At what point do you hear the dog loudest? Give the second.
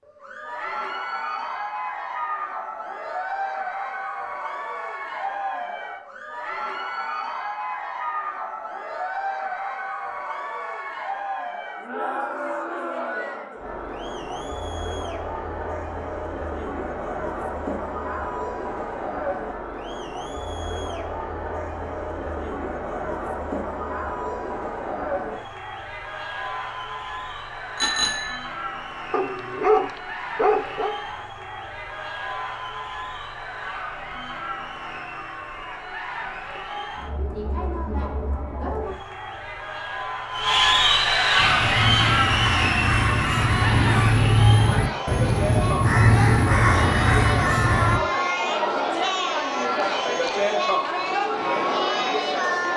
30 s.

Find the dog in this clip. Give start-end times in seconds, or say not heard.
29.1-30.9.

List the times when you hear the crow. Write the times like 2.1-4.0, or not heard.
41.4-48.0.